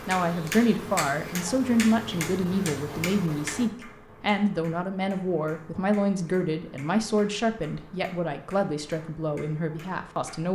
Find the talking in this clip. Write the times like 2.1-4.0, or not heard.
0.1-10.4.